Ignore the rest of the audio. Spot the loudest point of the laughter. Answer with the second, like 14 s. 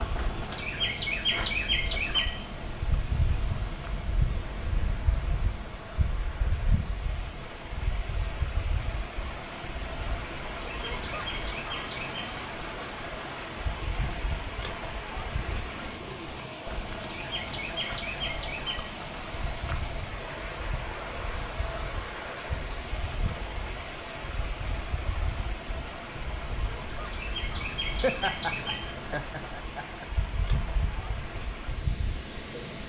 28 s.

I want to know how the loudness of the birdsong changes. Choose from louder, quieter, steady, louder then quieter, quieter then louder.
quieter then louder.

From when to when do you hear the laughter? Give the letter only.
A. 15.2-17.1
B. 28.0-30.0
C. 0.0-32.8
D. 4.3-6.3
B.